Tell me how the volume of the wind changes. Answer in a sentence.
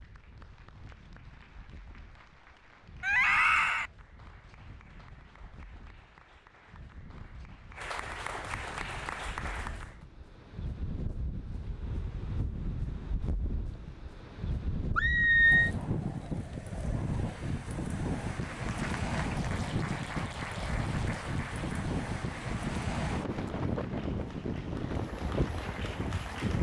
The loudness of the wind goes up.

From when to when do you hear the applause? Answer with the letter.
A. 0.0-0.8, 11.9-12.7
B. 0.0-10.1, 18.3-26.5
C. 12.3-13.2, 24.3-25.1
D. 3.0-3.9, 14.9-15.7
B.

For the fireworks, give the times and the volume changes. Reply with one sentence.
You can't hear the fireworks here.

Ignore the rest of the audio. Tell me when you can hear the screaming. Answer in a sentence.
The screaming can be heard from 3.0 to 3.9 s and from 14.9 to 15.7 s.